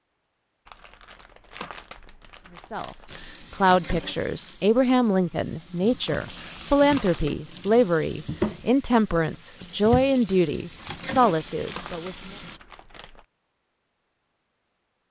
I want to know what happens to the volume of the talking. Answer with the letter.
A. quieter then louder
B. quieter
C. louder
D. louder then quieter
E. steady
E.